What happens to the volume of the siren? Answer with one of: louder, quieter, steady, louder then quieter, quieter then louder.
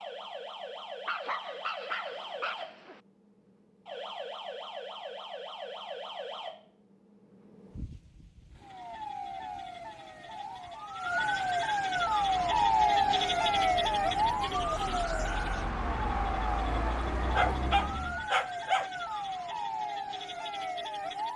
louder then quieter.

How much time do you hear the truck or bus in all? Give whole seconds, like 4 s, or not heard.
6 s.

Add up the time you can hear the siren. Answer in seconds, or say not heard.
21 s.